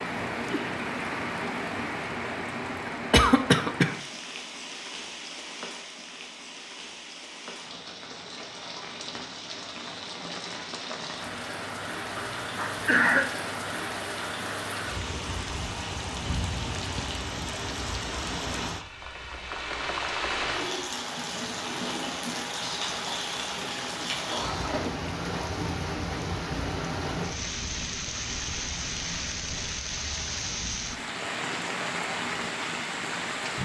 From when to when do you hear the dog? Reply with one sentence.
The dog can't be heard in this clip.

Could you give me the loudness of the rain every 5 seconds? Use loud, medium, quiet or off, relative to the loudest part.
loud, medium, loud, loud, loud, loud, loud.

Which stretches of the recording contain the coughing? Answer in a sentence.
The coughing can be heard from 2.9 to 3.9 s, from 12.2 to 13.2 s and from 24.3 to 25.1 s.